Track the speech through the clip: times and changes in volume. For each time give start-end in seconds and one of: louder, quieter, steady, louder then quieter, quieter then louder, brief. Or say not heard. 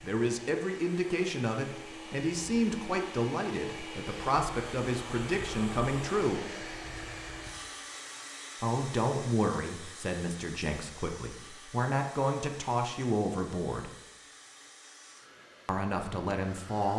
0.0-6.5 steady
8.6-13.9 quieter then louder
15.7-16.9 brief.